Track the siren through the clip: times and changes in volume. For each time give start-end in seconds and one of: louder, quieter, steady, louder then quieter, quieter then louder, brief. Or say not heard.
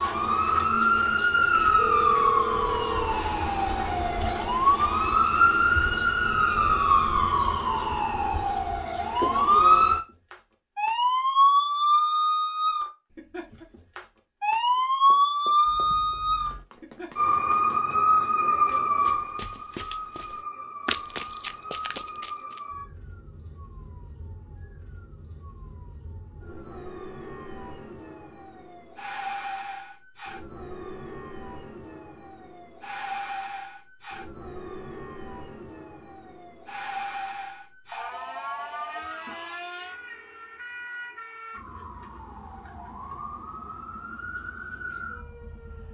0.0-45.8 quieter.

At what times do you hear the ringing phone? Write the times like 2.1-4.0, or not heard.
1.8-3.2, 15.7-16.6, 37.9-39.4.